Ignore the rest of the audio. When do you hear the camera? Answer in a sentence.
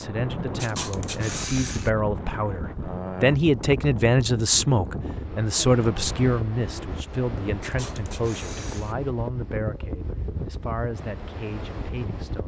You can hear the camera from 0.6 to 1.9 s and from 7.6 to 8.9 s.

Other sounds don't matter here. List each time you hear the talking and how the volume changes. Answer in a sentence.
The talking can be heard from 0.0 to 12.4 s, getting louder then quieter.